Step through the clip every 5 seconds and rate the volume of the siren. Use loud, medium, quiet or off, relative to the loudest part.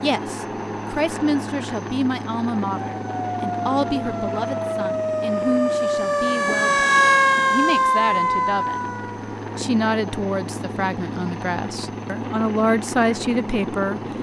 medium, loud, off.